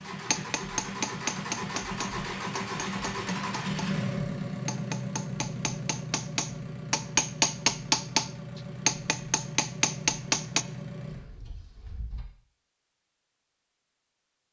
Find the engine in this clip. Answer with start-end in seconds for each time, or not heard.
0.0-12.2.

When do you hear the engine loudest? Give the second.
4 s.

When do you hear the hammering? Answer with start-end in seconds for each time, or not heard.
0.3-3.9, 4.7-10.7.